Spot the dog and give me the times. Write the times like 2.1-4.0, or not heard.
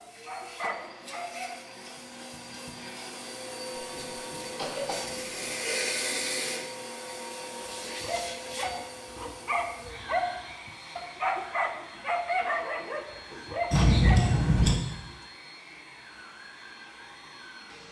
0.0-1.6, 7.7-14.8.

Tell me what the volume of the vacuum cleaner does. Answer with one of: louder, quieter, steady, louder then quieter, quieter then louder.
louder then quieter.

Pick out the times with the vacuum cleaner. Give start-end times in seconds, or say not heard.
0.0-17.8.